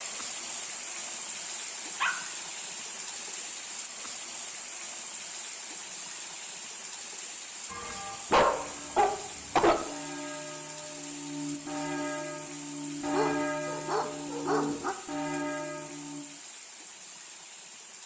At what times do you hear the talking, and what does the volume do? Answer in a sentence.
The talking can't be heard in this clip.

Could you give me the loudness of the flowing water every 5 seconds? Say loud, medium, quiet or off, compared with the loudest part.
loud, loud, medium, medium.